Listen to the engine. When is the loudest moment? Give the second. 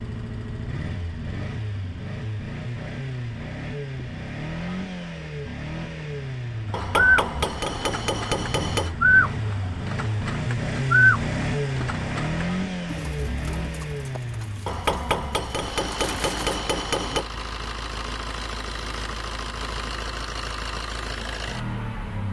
11 s.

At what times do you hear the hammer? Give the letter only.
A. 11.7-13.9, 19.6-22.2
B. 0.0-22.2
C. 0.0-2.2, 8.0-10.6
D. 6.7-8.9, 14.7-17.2
D.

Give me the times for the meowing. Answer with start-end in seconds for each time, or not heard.
not heard.